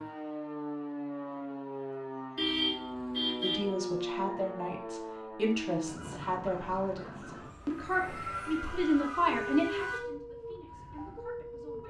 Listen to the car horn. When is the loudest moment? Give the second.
3 s.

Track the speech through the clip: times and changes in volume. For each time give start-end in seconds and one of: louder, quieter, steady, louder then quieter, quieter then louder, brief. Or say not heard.
3.4-11.8 louder then quieter.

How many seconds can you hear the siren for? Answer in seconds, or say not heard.
12 s.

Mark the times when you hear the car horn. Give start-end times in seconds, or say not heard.
2.4-3.7, 8.2-10.1.